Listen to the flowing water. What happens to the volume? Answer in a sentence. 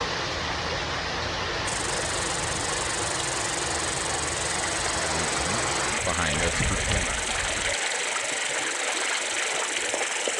The loudness of the flowing water stays about the same.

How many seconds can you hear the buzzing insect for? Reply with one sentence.
You can hear the buzzing insect for 9 seconds altogether.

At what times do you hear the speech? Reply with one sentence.
You can hear the speech from 4.9 to 7.1 s.